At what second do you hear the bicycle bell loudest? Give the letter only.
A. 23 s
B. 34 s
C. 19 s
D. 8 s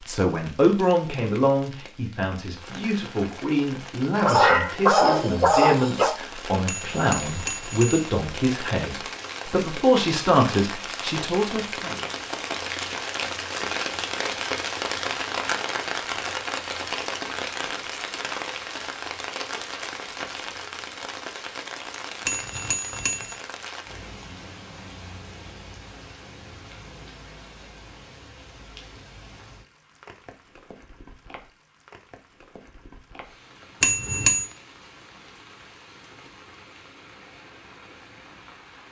B.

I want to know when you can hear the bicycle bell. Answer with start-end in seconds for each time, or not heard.
6.7-8.1, 22.2-23.4, 33.8-34.5.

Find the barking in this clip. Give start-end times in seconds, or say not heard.
4.2-6.2.